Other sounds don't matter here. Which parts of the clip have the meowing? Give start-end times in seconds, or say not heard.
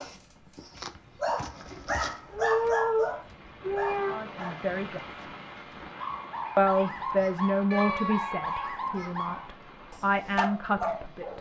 1.6-4.2, 7.7-8.6.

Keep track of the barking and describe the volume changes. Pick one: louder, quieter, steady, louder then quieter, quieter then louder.
steady.